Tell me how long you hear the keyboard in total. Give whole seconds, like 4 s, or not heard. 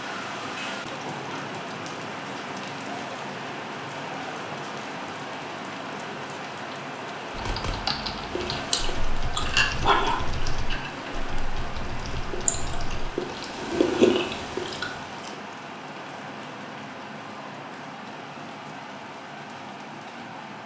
6 s.